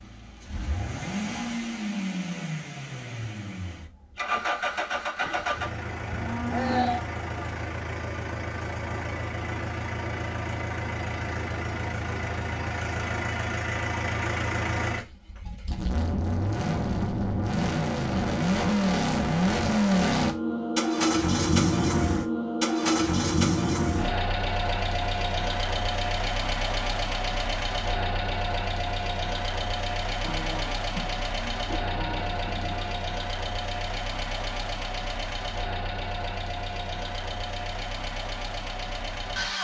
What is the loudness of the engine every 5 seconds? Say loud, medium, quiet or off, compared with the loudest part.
medium, medium, medium, loud, loud, medium, medium, medium.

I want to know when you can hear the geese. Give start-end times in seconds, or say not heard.
not heard.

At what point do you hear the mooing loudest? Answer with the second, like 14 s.
7 s.